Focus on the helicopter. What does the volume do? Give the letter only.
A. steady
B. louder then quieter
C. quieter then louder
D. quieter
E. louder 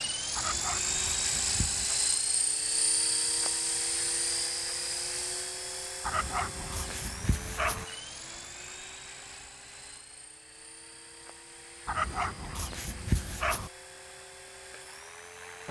D.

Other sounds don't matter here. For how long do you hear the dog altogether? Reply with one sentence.
The dog can be heard for 5 seconds in total.